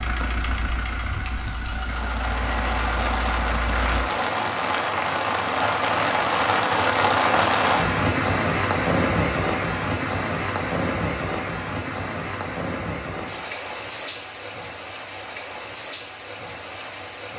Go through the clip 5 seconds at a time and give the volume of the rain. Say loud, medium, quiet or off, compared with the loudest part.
medium, loud, medium, quiet.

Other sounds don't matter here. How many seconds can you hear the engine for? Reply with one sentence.
The engine can be heard for 4 seconds in total.